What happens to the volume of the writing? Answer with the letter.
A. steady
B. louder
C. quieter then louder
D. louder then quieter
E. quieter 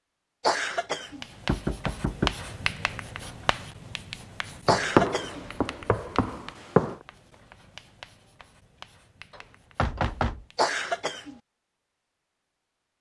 E.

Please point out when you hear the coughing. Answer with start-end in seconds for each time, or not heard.
0.4-1.2, 4.7-5.5, 10.6-11.3.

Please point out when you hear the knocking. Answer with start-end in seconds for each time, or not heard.
1.4-2.4, 4.7-7.0, 9.3-10.4.